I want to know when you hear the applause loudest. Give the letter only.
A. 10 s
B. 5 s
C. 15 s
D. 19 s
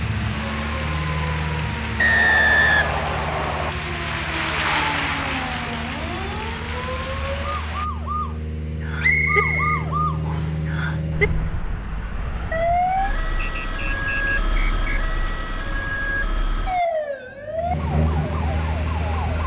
B.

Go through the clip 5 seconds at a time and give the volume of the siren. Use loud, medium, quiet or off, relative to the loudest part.
medium, loud, loud, loud.